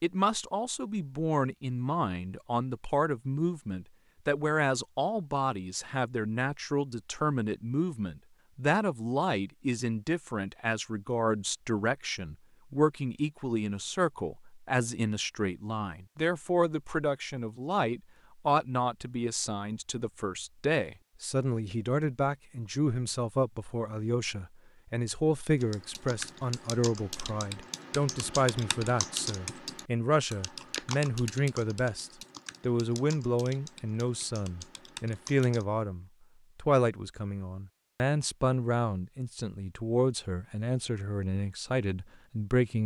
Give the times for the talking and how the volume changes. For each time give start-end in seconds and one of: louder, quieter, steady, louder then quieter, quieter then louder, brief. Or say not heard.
0.0-42.8 steady.